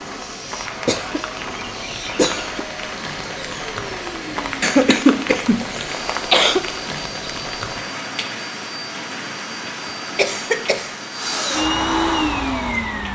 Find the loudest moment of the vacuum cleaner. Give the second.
12 s.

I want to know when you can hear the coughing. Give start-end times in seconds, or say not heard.
0.8-2.6, 4.6-6.6, 10.2-10.9.